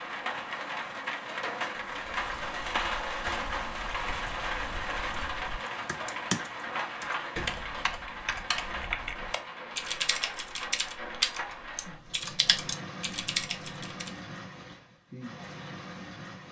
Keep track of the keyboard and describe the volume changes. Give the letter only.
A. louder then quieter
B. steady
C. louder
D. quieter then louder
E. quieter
C.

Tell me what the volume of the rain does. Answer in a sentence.
The volume of the rain goes down.